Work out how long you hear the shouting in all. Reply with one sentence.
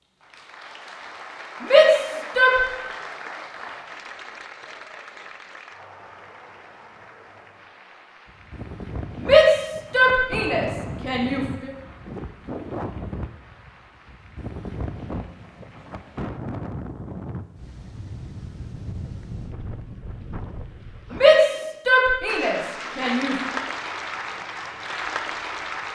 You can hear the shouting for 6 seconds altogether.